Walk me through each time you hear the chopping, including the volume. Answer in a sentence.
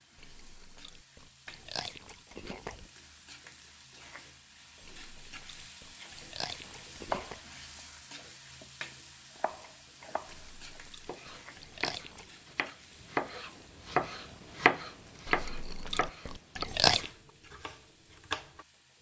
The chopping can be heard briefly from 7.1 to 8.7 s; and from 9.3 to 18.6 s, getting louder then quieter.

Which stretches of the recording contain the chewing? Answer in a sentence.
You can hear the chewing from 0.1 to 2.9 s, from 4.8 to 7.4 s, from 10.2 to 12.3 s and from 15.2 to 17.1 s.